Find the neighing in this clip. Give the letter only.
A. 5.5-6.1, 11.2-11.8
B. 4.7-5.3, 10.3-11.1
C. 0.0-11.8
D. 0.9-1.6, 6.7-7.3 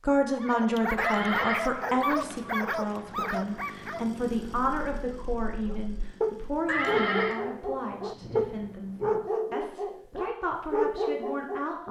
D.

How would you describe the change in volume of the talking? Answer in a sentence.
The volume of the talking goes down.